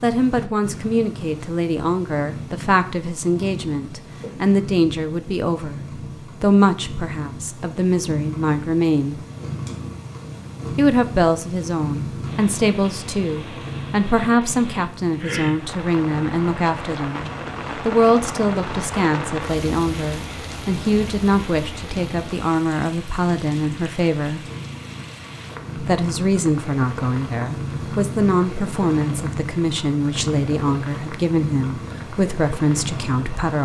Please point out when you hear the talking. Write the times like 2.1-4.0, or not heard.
0.0-5.8, 6.4-9.2, 10.8-24.4, 25.8-33.5.